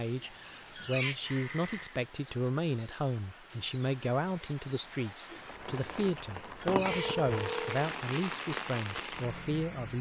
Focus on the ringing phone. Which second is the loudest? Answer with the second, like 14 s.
7 s.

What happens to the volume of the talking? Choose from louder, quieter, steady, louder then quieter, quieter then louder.
steady.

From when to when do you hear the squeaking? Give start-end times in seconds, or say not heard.
0.5-1.1, 6.4-7.1.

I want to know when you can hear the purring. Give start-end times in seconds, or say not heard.
not heard.